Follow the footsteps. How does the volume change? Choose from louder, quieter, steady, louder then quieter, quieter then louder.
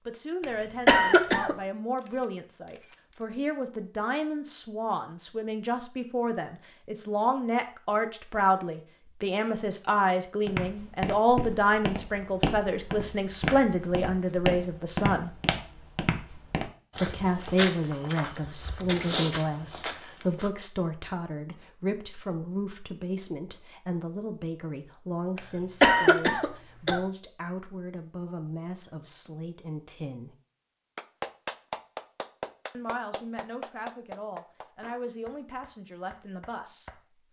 steady.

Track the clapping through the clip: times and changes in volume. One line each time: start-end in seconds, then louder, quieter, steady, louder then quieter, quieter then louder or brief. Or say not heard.
30.9-37.0 quieter.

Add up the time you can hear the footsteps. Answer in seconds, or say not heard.
10 s.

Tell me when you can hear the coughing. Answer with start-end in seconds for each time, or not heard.
0.4-1.6, 25.4-27.0.